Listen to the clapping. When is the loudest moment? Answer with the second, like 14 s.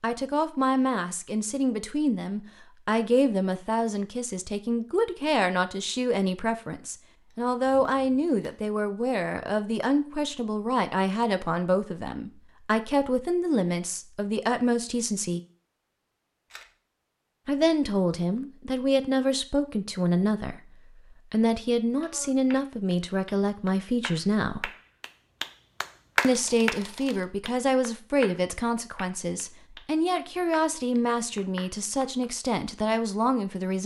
26 s.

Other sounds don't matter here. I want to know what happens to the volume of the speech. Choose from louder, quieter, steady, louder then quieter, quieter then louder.
steady.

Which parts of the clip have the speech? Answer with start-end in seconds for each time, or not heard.
0.0-15.4, 17.4-20.6, 21.3-24.7, 26.2-33.8.